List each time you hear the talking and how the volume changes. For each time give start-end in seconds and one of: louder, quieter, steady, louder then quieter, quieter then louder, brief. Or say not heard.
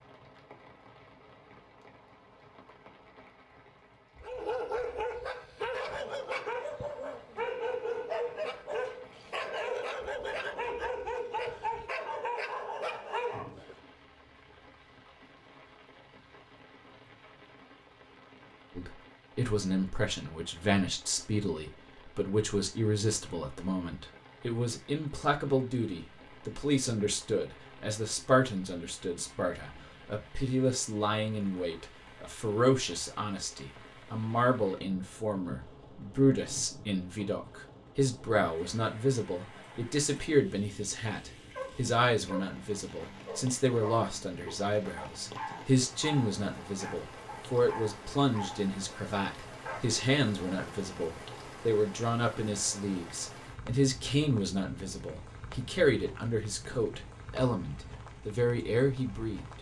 18.8-59.5 steady.